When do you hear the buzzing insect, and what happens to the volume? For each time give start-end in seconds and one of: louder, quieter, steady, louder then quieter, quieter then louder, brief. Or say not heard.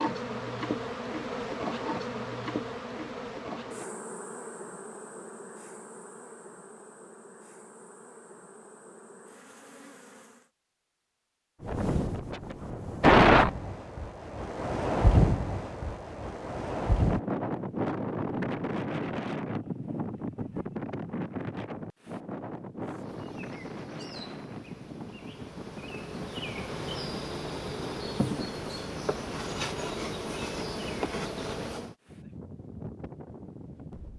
0.0-10.5 quieter
22.8-31.9 louder.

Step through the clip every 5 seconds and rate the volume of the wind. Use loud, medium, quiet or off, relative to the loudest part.
off, off, loud, medium, quiet, quiet, quiet.